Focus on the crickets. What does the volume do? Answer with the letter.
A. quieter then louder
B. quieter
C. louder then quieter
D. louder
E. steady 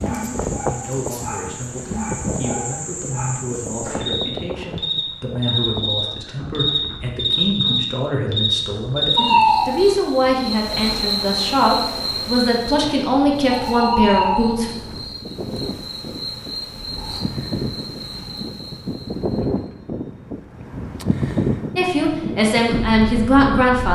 C.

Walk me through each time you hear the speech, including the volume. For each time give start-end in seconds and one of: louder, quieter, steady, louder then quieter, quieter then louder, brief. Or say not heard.
0.0-14.7 louder
21.8-23.8 brief.